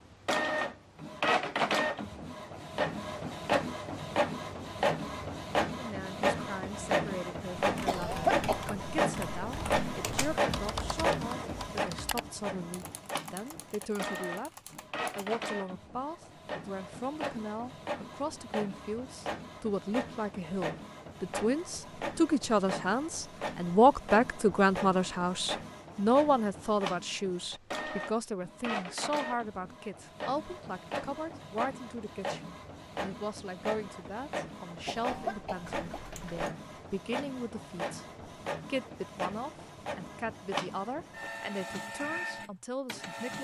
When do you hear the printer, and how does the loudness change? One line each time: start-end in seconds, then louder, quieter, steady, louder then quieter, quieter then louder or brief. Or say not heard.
0.2-43.3 quieter.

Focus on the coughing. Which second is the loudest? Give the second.
8 s.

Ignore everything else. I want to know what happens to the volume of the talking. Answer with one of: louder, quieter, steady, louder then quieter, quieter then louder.
louder then quieter.